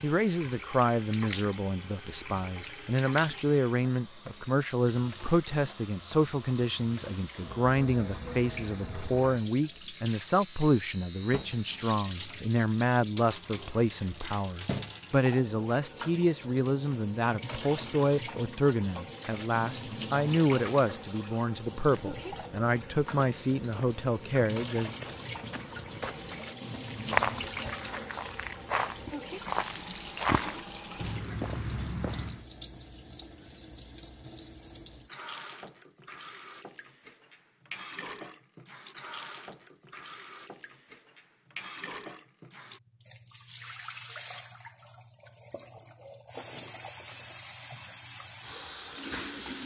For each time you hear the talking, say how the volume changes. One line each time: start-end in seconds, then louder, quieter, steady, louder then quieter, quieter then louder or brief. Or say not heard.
0.0-24.9 steady.